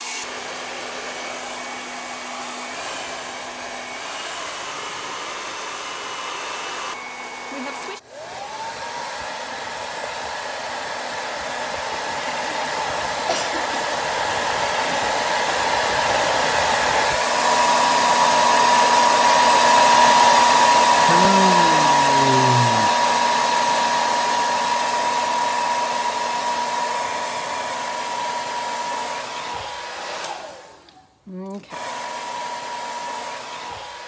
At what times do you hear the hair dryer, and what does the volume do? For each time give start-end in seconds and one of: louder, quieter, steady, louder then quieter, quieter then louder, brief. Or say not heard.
0.0-34.0 louder then quieter.